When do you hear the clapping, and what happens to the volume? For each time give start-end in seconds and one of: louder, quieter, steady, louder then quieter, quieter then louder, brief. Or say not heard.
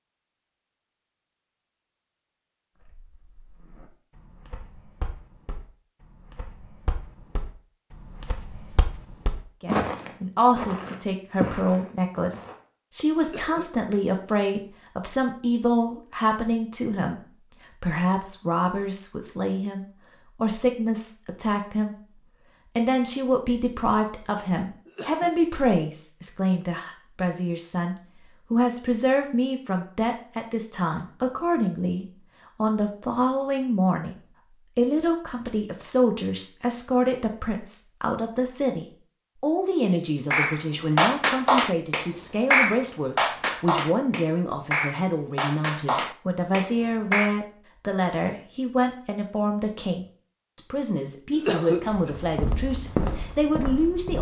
40.3-47.4 quieter.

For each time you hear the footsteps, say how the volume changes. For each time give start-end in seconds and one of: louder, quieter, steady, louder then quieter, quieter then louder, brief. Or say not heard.
2.8-12.6 louder
51.8-54.1 brief.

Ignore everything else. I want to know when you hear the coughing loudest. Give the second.
52 s.